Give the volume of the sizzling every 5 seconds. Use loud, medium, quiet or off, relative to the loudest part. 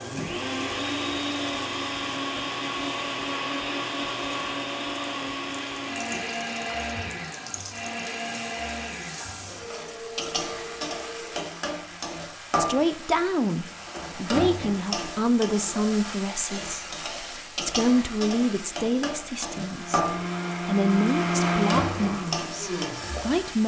quiet, medium, loud, loud, loud.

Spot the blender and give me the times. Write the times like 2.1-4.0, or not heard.
0.0-12.2, 19.6-23.4.